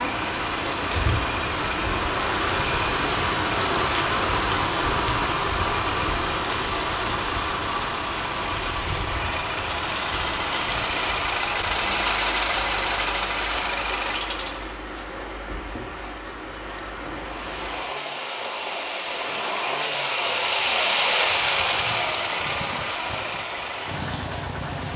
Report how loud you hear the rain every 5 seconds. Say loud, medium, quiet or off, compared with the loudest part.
loud, loud, medium, medium, medium.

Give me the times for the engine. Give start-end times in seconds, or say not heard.
0.0-14.8, 17.1-24.9.